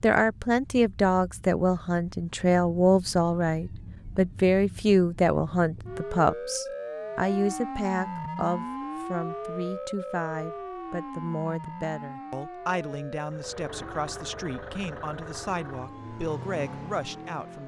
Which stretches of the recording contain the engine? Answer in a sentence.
The engine can be heard from 13.2 to 17.6 s.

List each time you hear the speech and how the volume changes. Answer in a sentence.
You can hear the speech from 0.0 to 17.6 s, getting quieter.